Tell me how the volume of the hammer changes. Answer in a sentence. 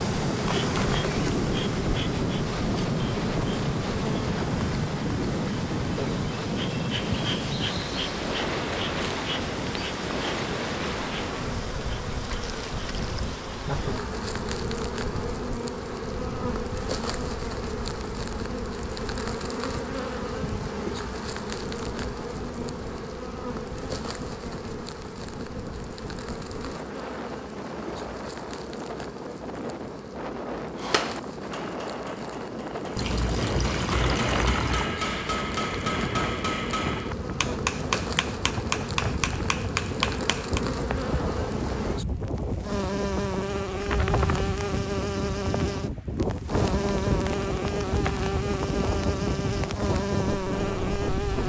The loudness of the hammer goes up.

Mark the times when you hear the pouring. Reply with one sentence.
You can hear the pouring from 12.2 to 13.3 s and from 33.0 to 34.9 s.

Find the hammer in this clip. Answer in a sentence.
The hammer can be heard from 30.8 to 40.6 s.